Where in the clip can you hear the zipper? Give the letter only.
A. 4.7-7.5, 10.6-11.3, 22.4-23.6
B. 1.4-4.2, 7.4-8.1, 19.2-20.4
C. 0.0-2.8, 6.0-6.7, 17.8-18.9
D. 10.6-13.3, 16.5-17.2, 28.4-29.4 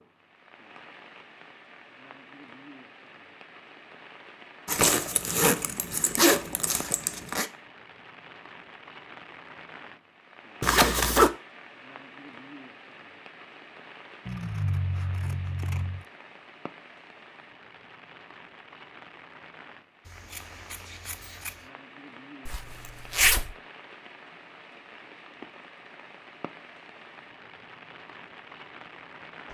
A.